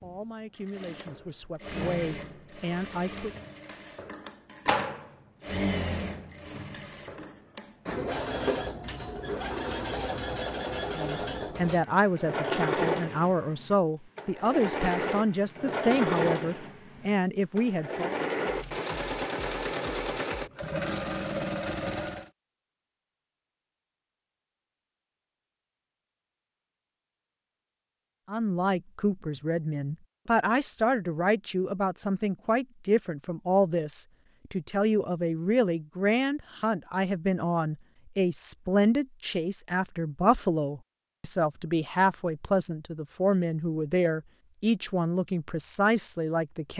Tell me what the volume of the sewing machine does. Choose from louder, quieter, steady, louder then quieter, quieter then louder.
louder.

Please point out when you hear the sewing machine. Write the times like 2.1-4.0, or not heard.
0.0-22.3.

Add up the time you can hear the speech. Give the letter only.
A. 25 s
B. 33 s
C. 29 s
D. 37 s
C.